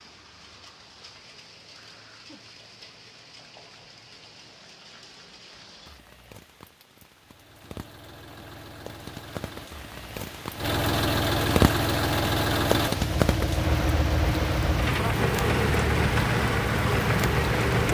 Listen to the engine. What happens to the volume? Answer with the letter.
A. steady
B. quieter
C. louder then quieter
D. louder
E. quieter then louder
D.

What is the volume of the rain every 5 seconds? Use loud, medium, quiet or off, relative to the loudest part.
quiet, quiet, loud, loud.